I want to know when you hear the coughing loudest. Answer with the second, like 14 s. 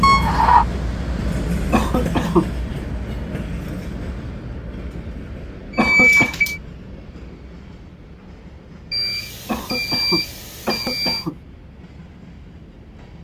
2 s.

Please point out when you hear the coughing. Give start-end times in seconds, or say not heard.
1.7-2.5, 5.8-6.3, 9.4-11.3.